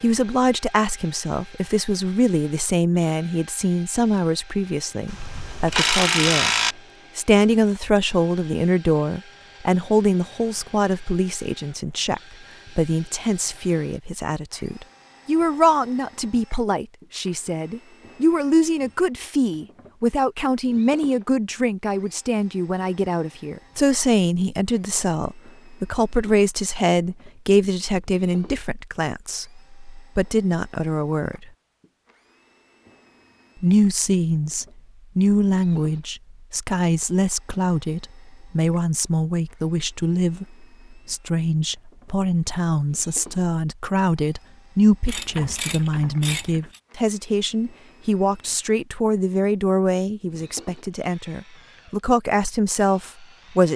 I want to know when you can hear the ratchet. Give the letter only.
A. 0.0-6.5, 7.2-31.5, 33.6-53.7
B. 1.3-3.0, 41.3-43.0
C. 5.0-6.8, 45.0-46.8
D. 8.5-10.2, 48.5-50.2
C.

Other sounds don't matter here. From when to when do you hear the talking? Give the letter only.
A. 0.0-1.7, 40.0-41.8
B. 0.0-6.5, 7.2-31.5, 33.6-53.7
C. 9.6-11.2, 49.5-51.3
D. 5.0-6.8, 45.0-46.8
B.